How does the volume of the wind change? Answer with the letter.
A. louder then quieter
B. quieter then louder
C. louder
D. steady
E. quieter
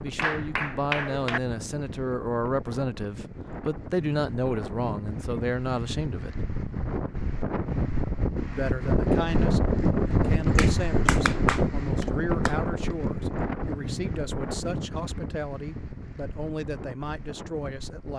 A.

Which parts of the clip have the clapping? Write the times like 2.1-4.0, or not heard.
0.1-1.4, 10.6-12.6.